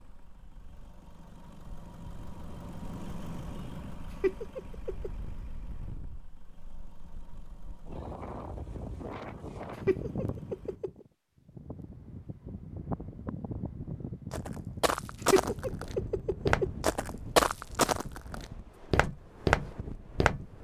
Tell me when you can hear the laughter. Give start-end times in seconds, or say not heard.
4.2-5.1, 9.8-11.1, 15.3-16.7.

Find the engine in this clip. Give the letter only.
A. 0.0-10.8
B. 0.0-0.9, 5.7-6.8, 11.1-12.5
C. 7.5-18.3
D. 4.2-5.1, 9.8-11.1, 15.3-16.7
A.